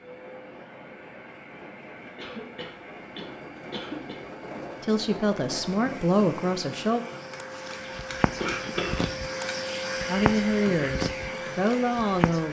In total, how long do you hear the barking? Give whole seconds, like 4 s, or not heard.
not heard.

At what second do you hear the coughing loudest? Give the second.
9 s.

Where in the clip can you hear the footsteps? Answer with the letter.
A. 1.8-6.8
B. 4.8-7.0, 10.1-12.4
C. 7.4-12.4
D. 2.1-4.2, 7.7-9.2
C.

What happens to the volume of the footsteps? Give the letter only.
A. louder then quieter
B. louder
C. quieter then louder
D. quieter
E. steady
A.